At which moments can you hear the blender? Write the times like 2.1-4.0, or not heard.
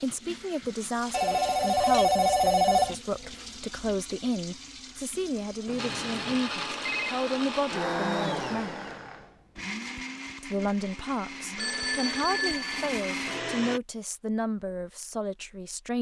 5.8-13.8.